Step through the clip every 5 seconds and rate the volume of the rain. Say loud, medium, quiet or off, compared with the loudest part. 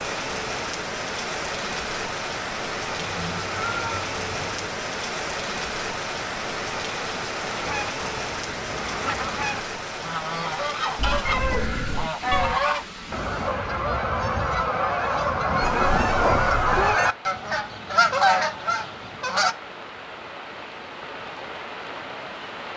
loud, loud, medium, medium, medium.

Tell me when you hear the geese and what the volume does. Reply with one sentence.
The geese can be heard from 7.6 to 19.6 s, getting louder.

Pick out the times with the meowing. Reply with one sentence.
The meowing can be heard from 3.0 to 4.7 s, from 10.9 to 12.6 s and from 15.6 to 17.0 s.